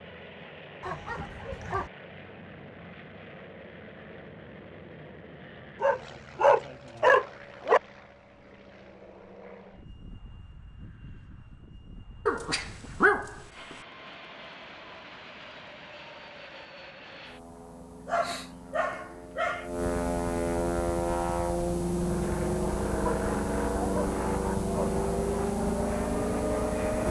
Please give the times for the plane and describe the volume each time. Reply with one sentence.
The plane can be heard from 0.0 to 27.0 s, getting louder.